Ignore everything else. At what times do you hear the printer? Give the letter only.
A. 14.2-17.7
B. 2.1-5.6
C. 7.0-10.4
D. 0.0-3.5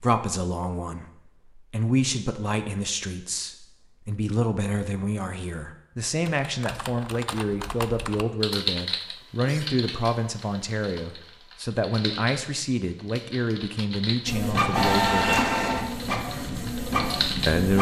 A.